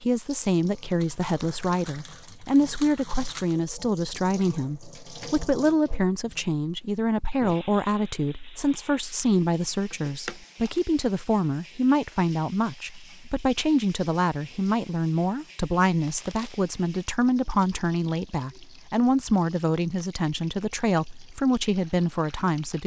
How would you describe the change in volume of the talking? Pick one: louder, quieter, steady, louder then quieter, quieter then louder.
steady.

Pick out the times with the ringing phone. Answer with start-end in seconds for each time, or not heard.
not heard.